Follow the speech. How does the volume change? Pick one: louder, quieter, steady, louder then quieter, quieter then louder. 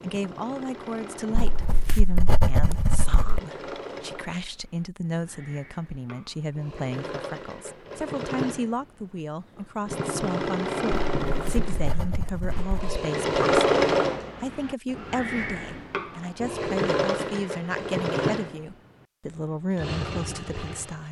steady.